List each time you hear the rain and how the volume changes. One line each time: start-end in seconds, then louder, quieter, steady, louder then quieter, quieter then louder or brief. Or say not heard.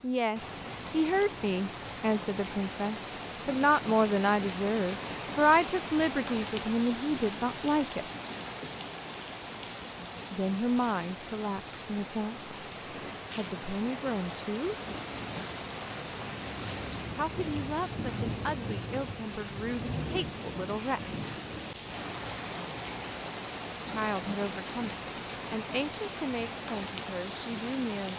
0.0-28.1 steady.